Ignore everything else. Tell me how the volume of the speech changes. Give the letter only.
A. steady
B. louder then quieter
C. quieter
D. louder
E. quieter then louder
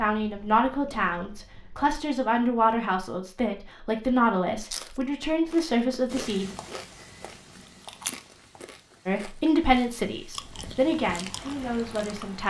A.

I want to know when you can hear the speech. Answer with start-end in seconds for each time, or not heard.
0.0-6.5, 9.1-12.4.